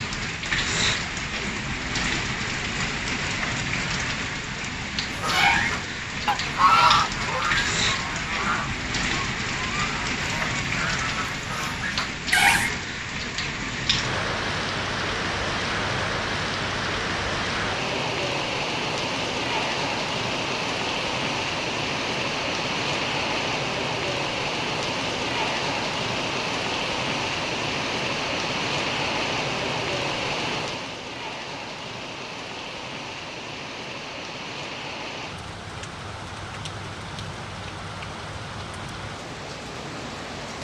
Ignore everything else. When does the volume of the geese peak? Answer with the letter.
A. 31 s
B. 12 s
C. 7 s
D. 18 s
C.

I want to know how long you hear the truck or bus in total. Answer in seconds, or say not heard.
not heard.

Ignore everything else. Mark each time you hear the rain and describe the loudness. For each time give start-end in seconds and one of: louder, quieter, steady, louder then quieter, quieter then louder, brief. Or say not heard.
0.0-40.5 quieter.